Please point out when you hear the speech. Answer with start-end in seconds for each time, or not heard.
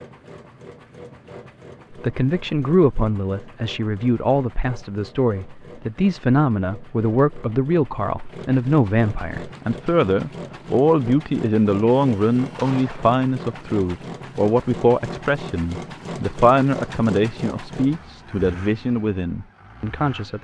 1.9-20.3.